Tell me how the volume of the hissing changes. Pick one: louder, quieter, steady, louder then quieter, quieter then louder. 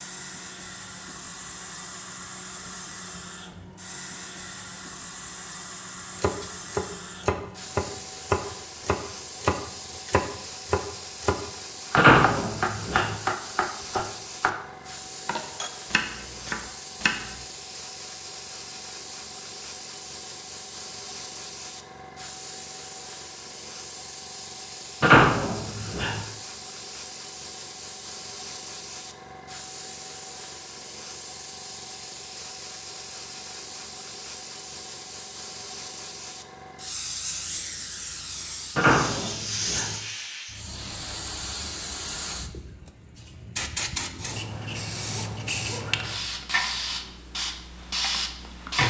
louder.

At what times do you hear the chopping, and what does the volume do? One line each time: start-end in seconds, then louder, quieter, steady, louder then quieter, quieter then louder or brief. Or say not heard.
6.2-14.6 steady
15.2-17.4 brief.